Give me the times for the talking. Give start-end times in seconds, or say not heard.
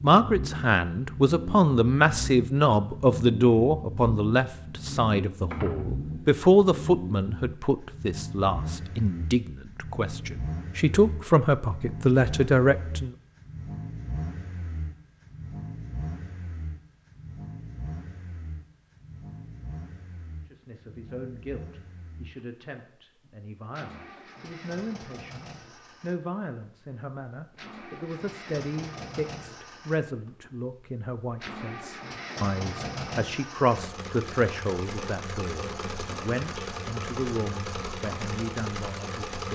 0.0-13.2, 20.5-39.5.